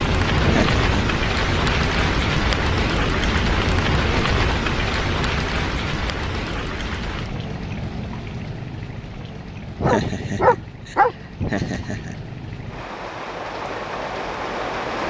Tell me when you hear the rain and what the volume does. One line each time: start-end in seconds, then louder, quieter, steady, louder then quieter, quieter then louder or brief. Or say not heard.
0.0-15.0 quieter then louder.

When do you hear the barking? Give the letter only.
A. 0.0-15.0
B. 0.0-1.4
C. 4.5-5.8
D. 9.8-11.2
D.